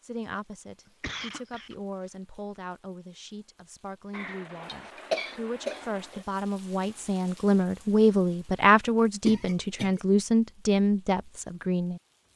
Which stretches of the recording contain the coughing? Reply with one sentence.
You can hear the coughing from 0.8 to 1.8 s, from 4.1 to 6.2 s and from 9.2 to 10.0 s.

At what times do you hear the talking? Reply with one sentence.
You can hear the talking from 0.0 to 12.0 s.